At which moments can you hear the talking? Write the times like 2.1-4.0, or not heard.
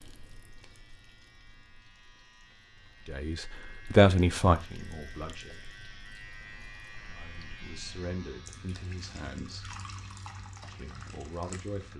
3.0-5.6, 7.1-9.8, 10.6-11.9.